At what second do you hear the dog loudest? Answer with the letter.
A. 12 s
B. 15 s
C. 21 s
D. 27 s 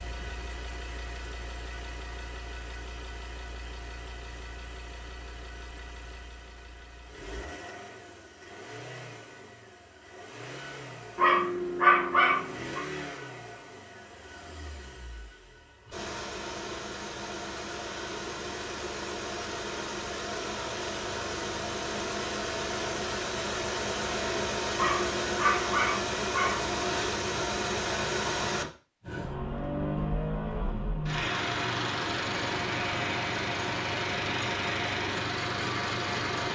A.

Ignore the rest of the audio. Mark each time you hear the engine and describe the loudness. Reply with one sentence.
The engine can be heard from 0.0 to 36.5 s, getting louder.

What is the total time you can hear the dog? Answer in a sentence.
You can hear the dog for 4 seconds altogether.